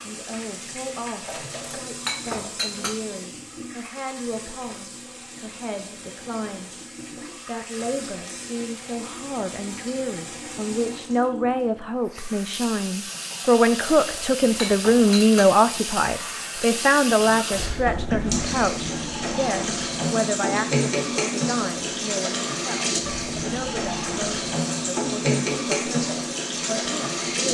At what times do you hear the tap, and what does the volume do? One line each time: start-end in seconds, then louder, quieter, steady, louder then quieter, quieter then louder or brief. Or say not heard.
0.0-27.4 louder.